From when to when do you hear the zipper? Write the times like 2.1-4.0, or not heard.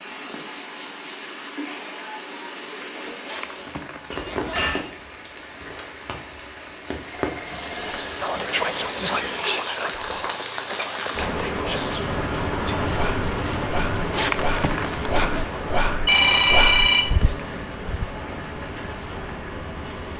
3.2-4.8, 14.1-15.4.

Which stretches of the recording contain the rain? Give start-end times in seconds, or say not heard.
0.0-20.1.